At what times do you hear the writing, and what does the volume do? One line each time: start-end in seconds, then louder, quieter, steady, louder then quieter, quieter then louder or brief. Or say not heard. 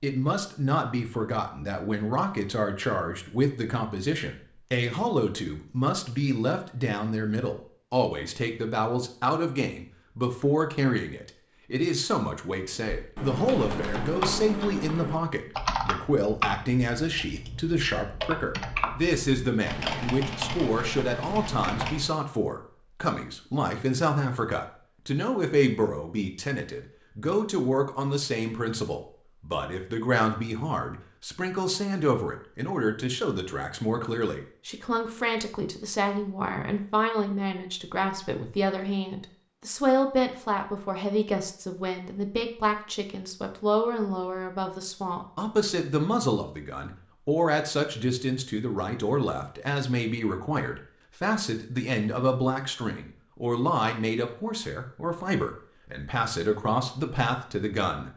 not heard.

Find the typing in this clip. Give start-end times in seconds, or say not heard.
12.9-22.1.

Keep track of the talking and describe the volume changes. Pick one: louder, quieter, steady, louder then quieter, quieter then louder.
steady.